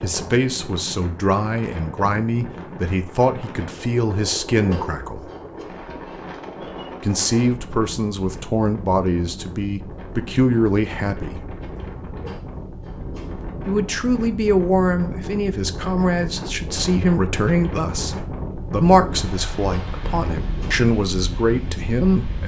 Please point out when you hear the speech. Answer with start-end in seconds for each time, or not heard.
0.0-5.3, 7.0-11.4, 13.7-22.4.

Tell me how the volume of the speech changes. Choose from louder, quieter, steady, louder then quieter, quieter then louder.
steady.